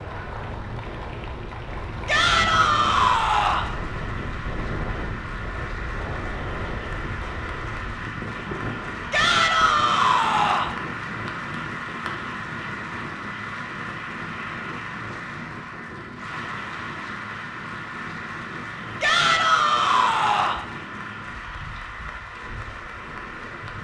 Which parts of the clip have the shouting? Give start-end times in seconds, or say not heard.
2.0-3.7, 9.1-10.8, 19.0-20.6.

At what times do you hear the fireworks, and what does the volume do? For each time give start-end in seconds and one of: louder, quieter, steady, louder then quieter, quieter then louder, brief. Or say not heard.
not heard.